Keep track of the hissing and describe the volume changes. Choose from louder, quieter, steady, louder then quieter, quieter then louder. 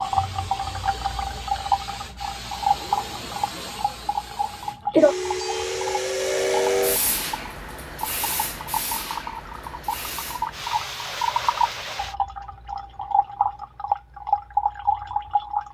louder then quieter.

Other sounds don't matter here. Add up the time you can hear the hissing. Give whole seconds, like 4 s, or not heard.
12 s.